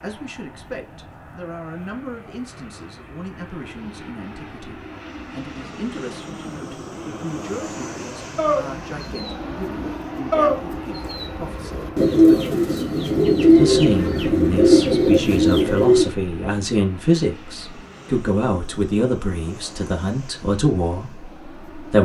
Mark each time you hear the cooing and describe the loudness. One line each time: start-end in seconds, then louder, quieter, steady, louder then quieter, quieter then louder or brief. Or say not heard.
8.3-16.1 louder.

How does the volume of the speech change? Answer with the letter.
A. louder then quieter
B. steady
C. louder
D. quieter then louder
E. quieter
C.